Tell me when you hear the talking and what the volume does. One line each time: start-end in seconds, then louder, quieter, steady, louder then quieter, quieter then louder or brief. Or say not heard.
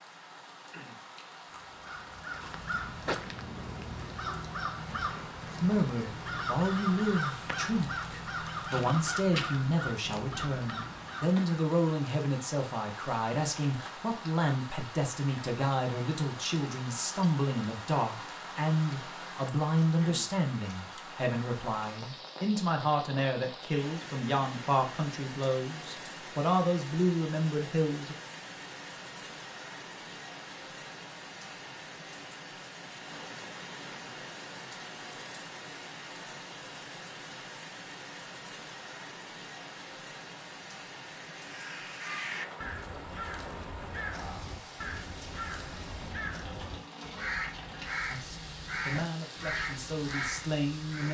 5.6-28.1 steady
48.1-51.0 brief.